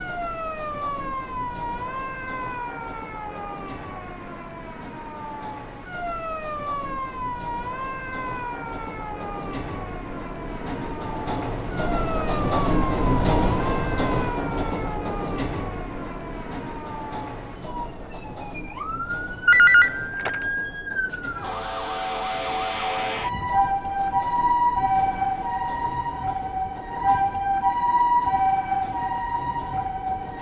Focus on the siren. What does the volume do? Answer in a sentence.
The volume of the siren goes up.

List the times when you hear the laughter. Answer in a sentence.
You can't hear the laughter here.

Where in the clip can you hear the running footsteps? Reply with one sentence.
The running footsteps can't be heard in this clip.